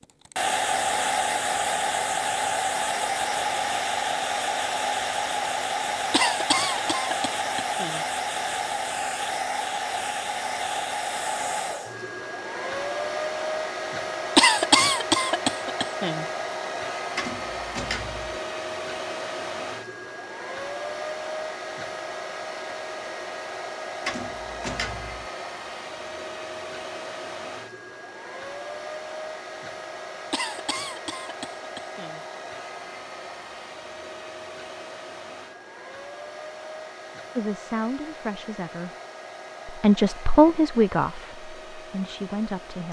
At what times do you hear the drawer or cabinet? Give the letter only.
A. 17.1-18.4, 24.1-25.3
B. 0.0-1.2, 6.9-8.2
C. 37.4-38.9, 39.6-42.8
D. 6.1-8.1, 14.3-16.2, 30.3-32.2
A.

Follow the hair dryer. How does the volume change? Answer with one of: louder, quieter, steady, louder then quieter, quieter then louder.
quieter.